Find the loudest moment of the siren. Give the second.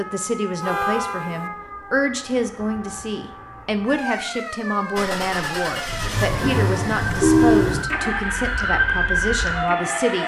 9 s.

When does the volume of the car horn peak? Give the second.
7 s.